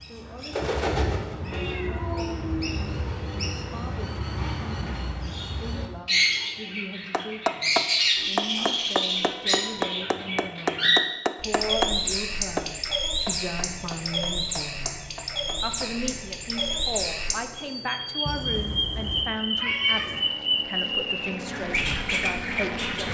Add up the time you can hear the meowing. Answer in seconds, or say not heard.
5 s.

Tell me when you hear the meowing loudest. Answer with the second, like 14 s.
20 s.